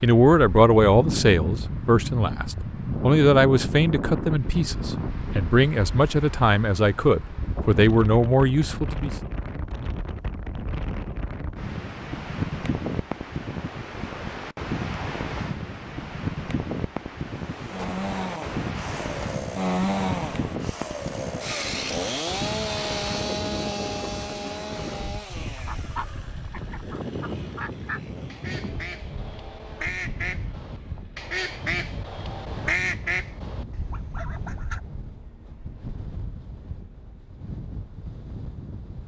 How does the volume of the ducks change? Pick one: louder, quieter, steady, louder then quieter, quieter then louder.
louder.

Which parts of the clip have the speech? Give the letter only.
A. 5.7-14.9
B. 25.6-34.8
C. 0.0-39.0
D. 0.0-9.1
D.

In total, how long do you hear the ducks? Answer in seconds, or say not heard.
9 s.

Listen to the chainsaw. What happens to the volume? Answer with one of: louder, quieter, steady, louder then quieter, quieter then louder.
quieter.